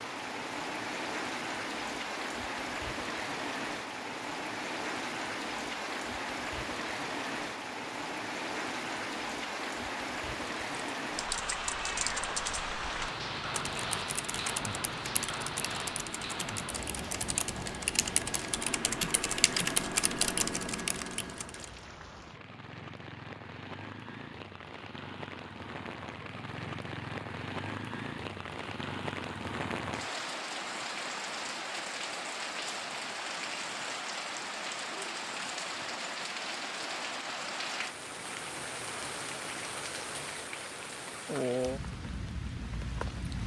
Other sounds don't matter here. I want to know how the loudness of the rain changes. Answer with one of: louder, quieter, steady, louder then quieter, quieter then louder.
quieter then louder.